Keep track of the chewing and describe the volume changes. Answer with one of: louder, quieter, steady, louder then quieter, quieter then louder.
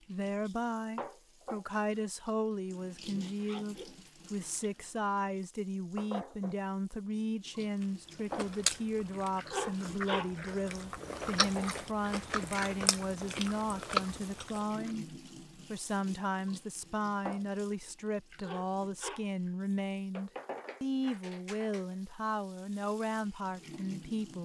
louder.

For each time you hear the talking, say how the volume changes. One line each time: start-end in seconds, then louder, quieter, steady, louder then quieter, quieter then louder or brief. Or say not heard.
0.1-24.4 steady.